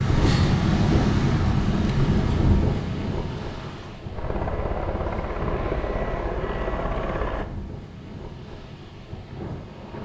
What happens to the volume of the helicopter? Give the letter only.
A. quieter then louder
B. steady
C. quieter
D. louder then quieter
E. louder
E.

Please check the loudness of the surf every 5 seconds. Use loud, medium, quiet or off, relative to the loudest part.
loud, quiet.